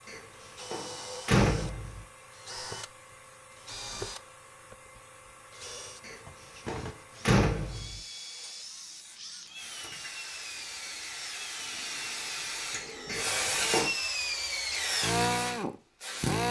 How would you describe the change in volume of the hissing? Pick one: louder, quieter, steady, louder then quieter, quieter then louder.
louder.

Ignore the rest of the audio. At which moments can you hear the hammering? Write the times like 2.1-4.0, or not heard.
not heard.